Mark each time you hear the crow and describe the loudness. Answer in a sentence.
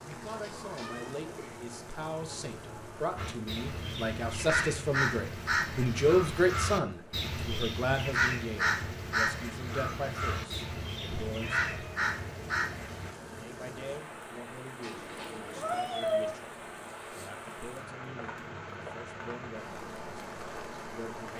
The crow can be heard from 3.1 to 13.2 s, at a steady volume.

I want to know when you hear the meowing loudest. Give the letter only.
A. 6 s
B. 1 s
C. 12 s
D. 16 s
D.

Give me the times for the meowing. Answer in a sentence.
The meowing can be heard from 0.2 to 1.1 s, from 11.4 to 12.0 s and from 14.8 to 16.4 s.